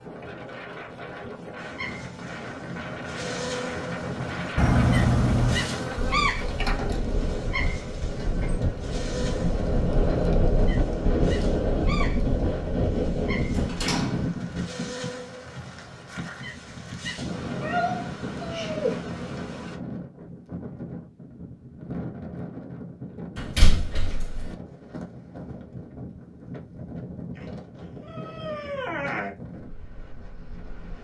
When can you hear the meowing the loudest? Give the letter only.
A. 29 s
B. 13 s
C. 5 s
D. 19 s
C.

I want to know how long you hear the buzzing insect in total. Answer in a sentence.
The buzzing insect can be heard for 18 seconds in total.